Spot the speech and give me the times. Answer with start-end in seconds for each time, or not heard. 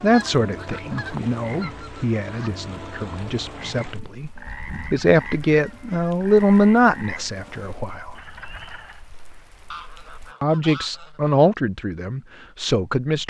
0.0-8.2, 10.4-13.2.